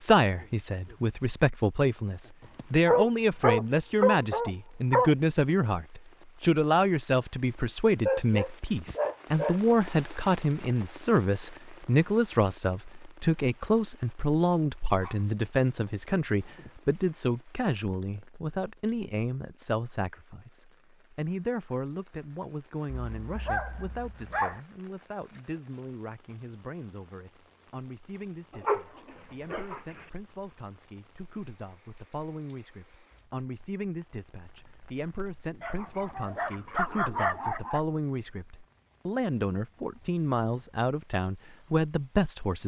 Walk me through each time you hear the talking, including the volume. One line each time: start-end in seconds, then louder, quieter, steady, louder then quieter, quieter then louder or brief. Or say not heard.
0.0-42.6 quieter then louder.